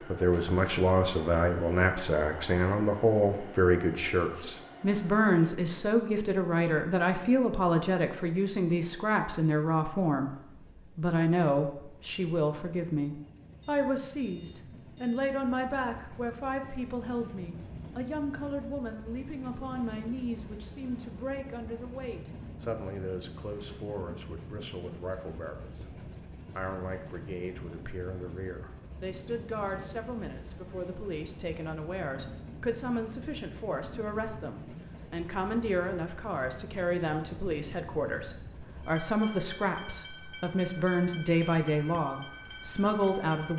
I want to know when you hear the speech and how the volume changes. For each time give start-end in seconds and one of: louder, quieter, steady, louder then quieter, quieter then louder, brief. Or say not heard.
0.1-43.5 quieter then louder.